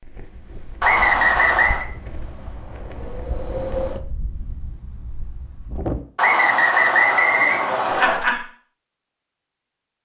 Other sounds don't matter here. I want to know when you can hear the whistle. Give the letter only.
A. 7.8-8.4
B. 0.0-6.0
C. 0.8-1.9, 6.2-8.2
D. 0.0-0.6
C.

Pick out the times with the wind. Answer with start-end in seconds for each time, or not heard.
0.0-6.0.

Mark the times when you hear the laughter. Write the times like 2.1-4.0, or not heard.
7.8-8.4.